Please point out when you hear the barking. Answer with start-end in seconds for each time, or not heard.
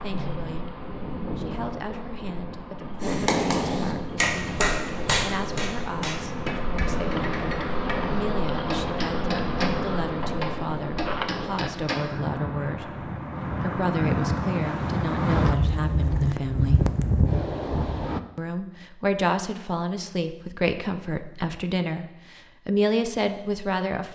not heard.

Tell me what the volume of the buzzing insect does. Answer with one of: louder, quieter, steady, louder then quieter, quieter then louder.
louder.